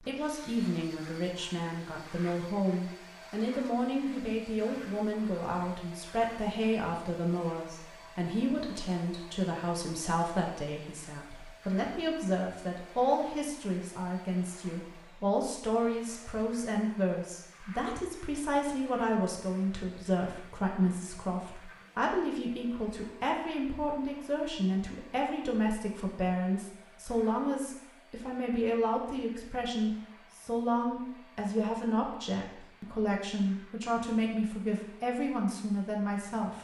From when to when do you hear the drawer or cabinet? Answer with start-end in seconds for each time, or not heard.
not heard.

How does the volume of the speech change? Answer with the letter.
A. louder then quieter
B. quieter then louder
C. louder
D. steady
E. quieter
D.